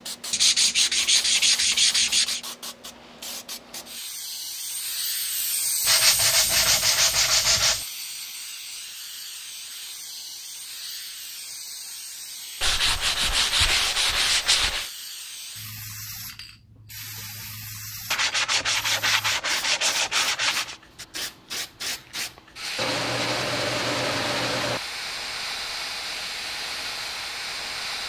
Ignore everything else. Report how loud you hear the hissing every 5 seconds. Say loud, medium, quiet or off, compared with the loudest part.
medium, loud, medium, medium, loud, loud.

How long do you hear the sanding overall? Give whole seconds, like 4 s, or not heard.
11 s.